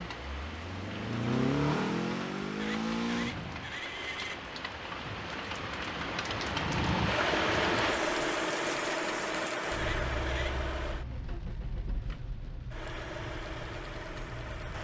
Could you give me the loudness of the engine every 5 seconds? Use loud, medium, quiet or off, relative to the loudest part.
loud, loud, medium.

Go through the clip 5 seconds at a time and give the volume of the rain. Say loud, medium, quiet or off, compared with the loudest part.
medium, loud, medium.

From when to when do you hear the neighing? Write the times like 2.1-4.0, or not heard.
2.5-4.4, 9.8-10.6.